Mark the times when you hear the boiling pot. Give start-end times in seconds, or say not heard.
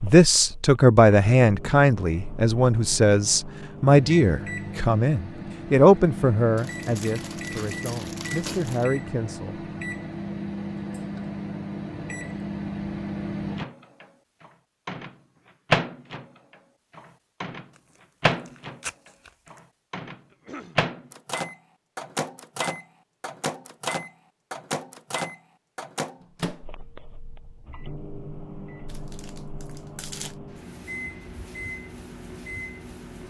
not heard.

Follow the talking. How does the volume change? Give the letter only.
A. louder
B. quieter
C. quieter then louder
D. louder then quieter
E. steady
B.